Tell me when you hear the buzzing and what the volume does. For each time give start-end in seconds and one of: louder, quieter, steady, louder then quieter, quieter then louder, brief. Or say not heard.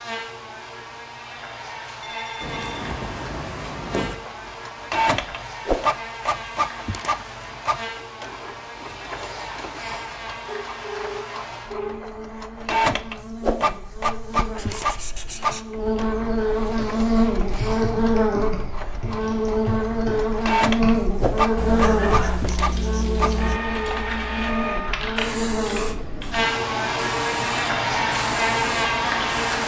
0.0-29.6 louder.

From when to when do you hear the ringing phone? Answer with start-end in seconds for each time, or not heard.
2.0-3.0, 10.4-12.1, 21.6-22.4.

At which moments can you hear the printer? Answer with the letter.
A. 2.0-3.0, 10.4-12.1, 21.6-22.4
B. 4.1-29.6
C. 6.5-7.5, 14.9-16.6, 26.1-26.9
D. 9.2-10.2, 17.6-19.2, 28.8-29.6
B.